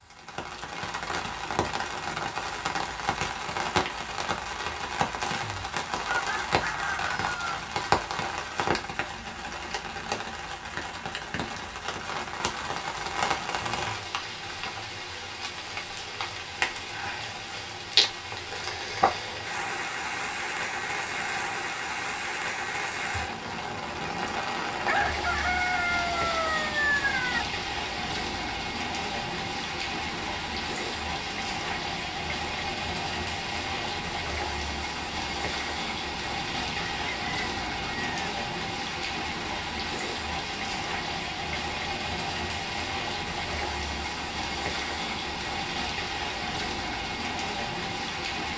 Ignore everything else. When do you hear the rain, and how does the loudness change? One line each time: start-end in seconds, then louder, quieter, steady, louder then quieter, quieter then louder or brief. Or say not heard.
0.0-48.5 steady.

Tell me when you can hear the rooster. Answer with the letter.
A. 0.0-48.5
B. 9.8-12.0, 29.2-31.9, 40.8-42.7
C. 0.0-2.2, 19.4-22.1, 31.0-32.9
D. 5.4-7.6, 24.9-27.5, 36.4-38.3
D.